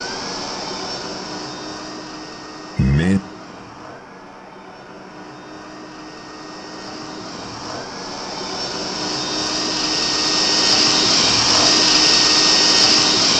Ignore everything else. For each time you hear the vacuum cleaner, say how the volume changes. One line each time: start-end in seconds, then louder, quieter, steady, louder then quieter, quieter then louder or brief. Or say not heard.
0.0-13.3 quieter then louder.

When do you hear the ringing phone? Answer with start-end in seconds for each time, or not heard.
2.8-3.2.